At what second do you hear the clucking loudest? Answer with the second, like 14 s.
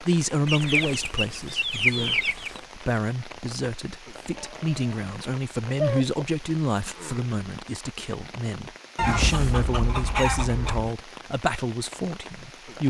2 s.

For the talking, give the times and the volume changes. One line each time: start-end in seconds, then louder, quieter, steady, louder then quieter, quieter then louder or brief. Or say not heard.
0.0-12.8 steady.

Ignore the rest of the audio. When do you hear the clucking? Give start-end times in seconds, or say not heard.
0.5-2.6, 4.3-6.2, 8.9-10.9.